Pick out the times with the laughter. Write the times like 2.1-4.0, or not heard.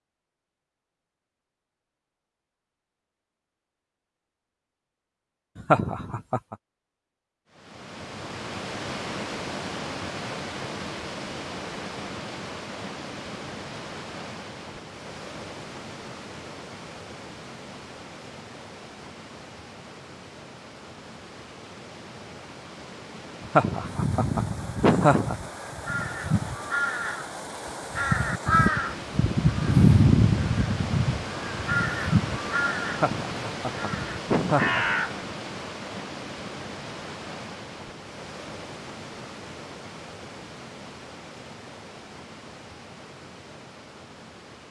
5.5-6.5, 23.4-25.5, 32.9-35.0.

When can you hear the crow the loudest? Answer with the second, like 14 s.
30 s.